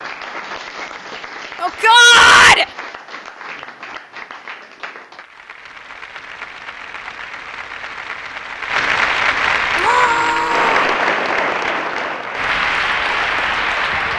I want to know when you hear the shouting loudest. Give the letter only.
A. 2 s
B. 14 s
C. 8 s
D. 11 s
A.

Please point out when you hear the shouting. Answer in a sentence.
You can hear the shouting from 1.6 to 2.6 s and from 9.8 to 10.9 s.